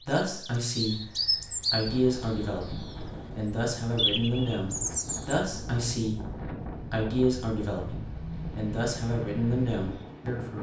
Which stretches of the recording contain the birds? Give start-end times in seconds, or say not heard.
0.0-5.4.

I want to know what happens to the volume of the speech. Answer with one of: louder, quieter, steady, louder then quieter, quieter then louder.
steady.